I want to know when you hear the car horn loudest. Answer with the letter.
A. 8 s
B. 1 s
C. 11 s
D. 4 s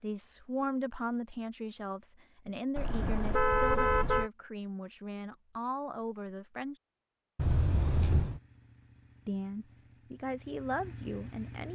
D.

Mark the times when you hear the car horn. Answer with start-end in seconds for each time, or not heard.
2.8-4.3, 7.3-8.4.